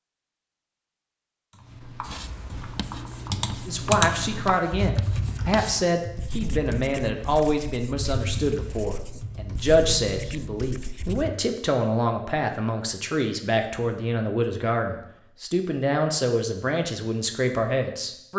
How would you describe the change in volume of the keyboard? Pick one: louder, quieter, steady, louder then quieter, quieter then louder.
louder then quieter.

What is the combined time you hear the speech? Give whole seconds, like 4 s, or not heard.
15 s.